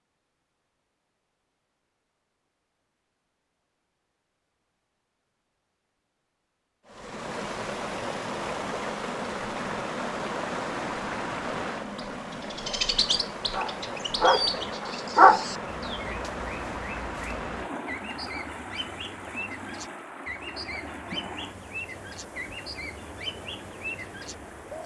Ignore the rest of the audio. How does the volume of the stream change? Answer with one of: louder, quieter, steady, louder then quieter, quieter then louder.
quieter.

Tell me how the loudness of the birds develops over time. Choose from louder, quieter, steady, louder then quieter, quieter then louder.
quieter.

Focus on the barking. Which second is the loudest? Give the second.
15 s.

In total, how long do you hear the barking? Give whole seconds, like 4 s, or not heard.
2 s.